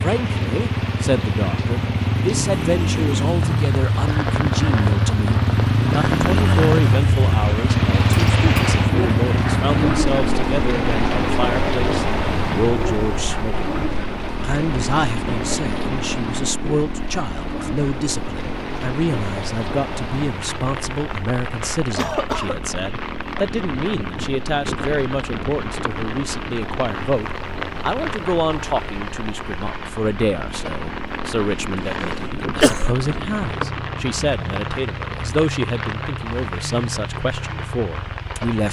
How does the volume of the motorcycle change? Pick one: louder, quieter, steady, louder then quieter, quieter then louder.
quieter.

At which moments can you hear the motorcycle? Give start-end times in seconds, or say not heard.
0.0-38.5.